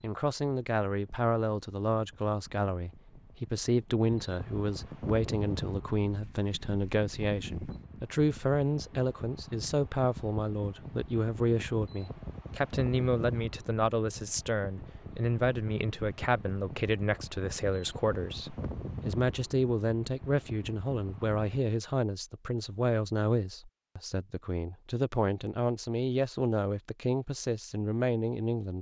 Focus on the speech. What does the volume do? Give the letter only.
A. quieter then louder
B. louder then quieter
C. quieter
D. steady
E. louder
D.